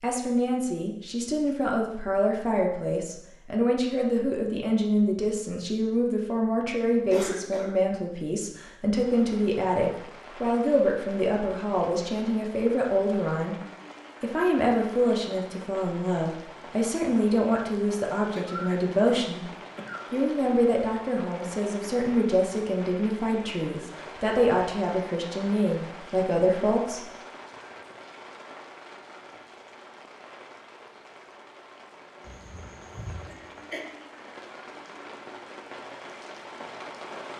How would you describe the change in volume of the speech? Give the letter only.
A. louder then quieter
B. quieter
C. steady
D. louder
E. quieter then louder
C.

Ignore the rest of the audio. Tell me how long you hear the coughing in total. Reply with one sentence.
The coughing can be heard for 4 seconds in total.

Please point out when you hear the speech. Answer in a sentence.
The speech can be heard from 0.0 to 13.6 s, from 14.2 to 19.4 s and from 20.1 to 27.1 s.